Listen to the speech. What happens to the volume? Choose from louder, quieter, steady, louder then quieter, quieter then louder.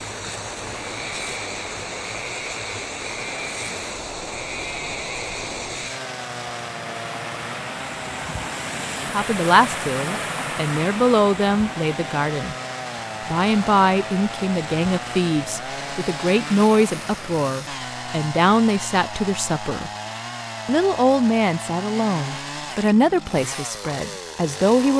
steady.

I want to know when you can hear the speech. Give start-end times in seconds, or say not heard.
9.1-12.6, 13.2-19.9, 20.6-24.9.